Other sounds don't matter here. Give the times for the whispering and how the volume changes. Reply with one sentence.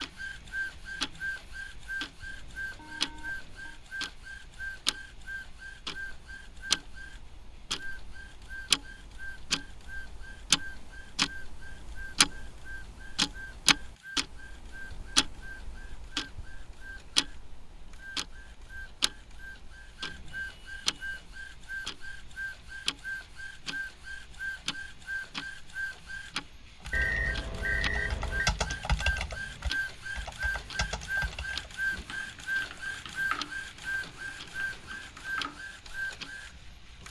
You can't hear the whispering here.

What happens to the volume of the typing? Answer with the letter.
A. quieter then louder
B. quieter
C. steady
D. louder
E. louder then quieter
B.